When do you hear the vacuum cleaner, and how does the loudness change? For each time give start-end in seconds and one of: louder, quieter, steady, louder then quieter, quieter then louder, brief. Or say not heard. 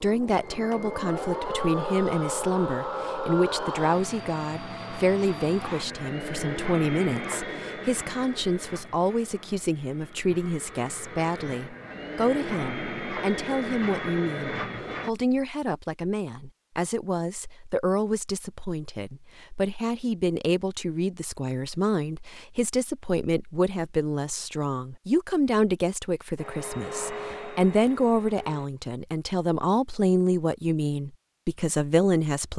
0.0-15.1 quieter then louder
26.4-28.7 brief.